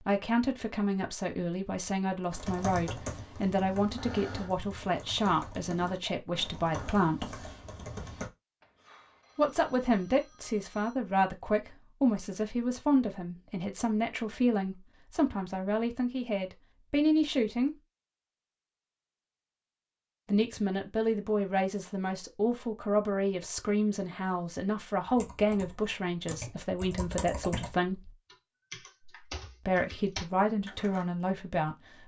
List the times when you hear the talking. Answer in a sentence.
You can hear the talking from 0.0 to 7.3 s, from 9.3 to 17.8 s, from 20.2 to 28.1 s and from 29.6 to 32.0 s.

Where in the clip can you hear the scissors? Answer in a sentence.
You can't hear the scissors here.